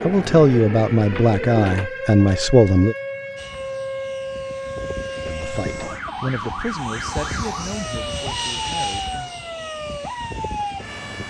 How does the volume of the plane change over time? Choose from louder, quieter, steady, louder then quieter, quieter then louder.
louder then quieter.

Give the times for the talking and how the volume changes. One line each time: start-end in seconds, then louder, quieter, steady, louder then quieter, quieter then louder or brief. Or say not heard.
0.0-3.0 brief
5.2-9.3 quieter.